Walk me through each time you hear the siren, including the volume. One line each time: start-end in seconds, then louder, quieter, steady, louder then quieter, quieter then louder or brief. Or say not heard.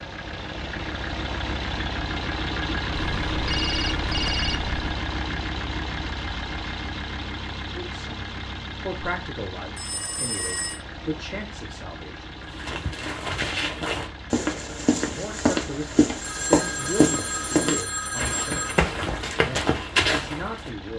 not heard.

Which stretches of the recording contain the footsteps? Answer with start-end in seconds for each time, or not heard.
12.6-20.7.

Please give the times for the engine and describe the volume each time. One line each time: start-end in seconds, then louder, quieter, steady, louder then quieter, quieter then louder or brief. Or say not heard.
0.0-20.9 quieter.